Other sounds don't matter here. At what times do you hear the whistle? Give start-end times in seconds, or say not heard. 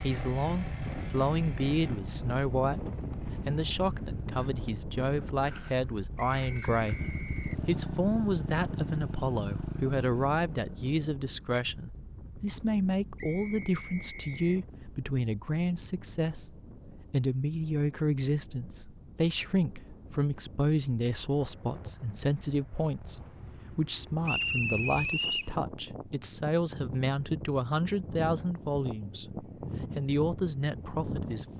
6.2-7.5, 13.2-14.6, 24.2-25.6.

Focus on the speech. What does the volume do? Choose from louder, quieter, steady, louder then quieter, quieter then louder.
steady.